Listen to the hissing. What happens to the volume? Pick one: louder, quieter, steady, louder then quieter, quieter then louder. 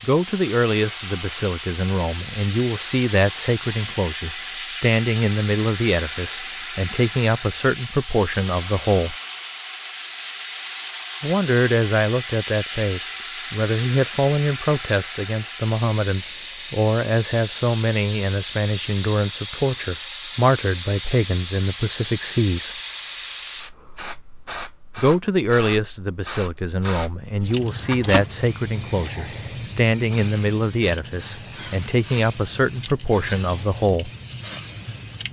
steady.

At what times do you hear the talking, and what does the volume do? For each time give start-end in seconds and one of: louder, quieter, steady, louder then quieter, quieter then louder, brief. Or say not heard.
0.0-9.2 steady
11.2-22.7 steady
24.9-34.1 steady.